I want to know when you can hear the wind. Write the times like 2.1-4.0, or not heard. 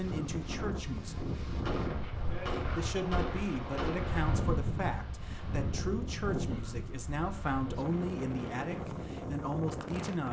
0.0-10.2.